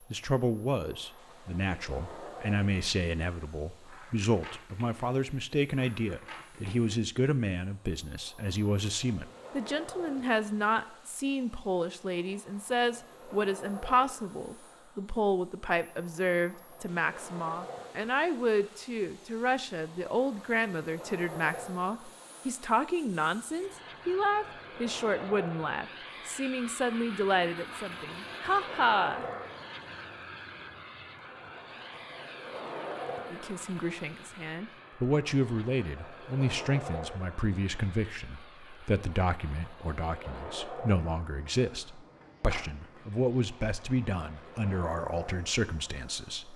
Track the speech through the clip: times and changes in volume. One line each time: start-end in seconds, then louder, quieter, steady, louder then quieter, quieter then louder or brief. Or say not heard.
0.1-29.2 steady
33.3-46.5 steady.